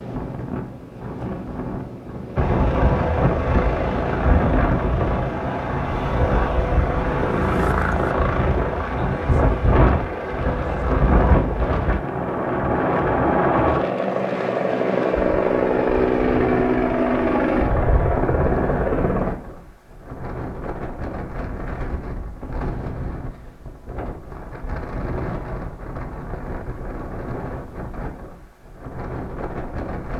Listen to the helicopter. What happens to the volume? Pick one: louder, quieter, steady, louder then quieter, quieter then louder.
steady.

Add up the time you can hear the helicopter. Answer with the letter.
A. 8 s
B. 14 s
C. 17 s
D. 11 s
C.